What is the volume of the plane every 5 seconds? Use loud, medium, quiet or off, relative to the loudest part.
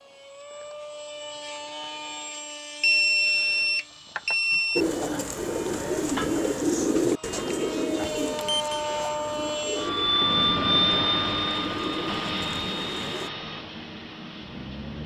quiet, medium, loud.